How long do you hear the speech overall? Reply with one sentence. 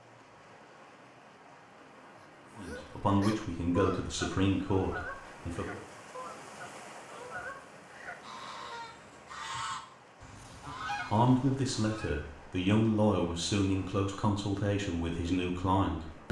You can hear the speech for 8 seconds altogether.